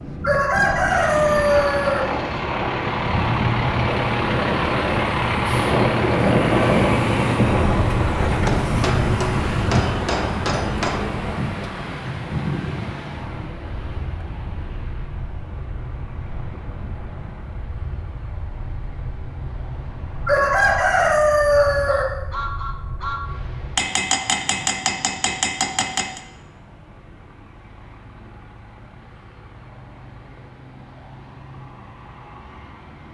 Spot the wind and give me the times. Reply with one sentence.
The wind can be heard from 0.0 to 23.7 s.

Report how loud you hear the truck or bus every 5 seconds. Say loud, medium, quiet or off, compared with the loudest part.
loud, loud, medium, quiet, quiet, quiet, quiet.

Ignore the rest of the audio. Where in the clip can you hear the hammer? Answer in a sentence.
You can hear the hammer from 8.4 to 11.1 s and from 23.8 to 26.2 s.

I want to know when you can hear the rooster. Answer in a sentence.
The rooster can be heard from 0.2 to 2.0 s and from 20.2 to 22.1 s.